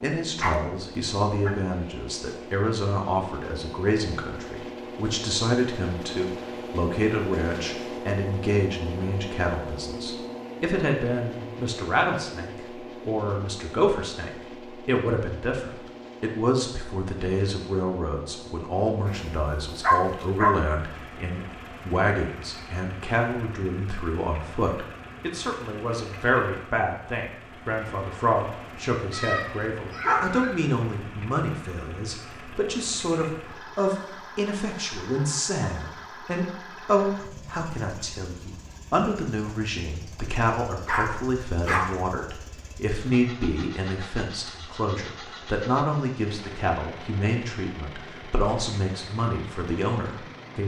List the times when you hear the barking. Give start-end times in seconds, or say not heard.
0.4-1.6, 19.1-20.6, 29.1-30.6, 40.9-42.0.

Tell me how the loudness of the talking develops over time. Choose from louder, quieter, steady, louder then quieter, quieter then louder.
steady.